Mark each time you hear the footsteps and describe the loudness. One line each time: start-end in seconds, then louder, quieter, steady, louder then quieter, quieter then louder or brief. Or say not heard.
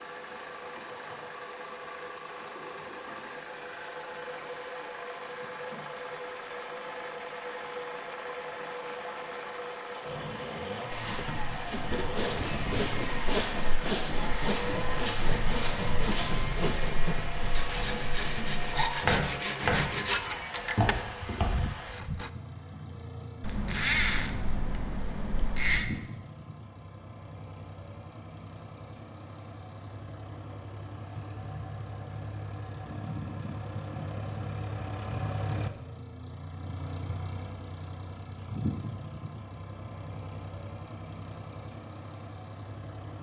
10.9-21.8 louder.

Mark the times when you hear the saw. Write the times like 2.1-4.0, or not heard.
11.1-22.3.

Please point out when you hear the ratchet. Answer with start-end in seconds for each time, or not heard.
23.4-25.9.